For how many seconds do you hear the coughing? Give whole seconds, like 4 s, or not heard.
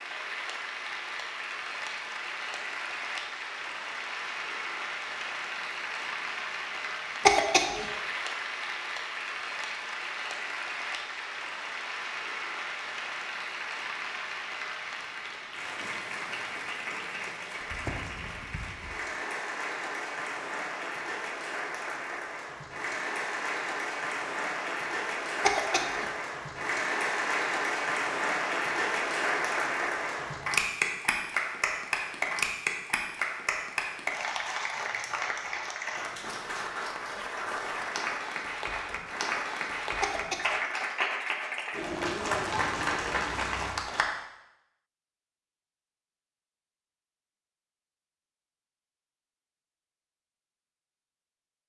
2 s.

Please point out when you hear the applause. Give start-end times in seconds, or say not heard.
0.0-44.1.